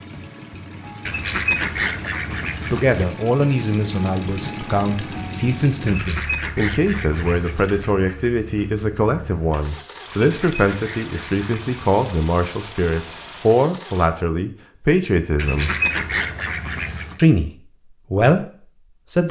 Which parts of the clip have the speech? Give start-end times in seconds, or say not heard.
2.7-15.8, 17.1-19.2.